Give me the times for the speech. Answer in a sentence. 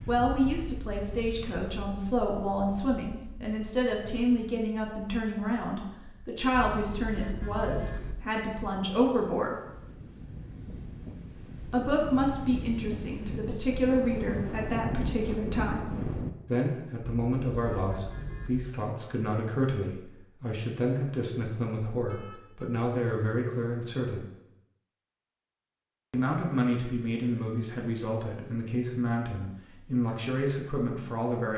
The speech can be heard from 0.1 to 9.6 s, from 11.7 to 24.2 s and from 26.1 to 31.5 s.